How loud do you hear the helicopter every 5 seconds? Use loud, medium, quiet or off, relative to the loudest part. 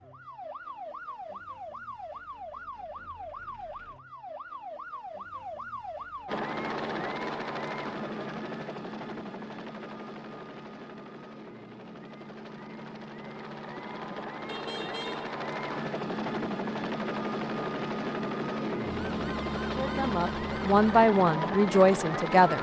off, loud, medium, loud, loud.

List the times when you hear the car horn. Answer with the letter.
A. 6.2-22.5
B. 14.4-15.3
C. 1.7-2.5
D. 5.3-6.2
B.